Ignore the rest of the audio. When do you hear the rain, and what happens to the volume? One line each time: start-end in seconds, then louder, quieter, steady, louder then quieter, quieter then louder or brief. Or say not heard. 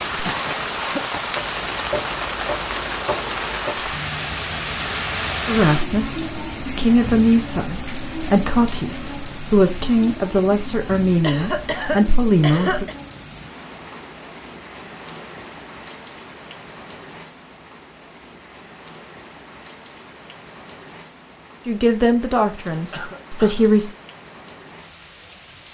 0.0-25.7 quieter.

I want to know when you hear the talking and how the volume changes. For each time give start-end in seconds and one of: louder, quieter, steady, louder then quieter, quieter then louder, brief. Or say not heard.
5.5-12.8 steady
21.6-23.9 brief.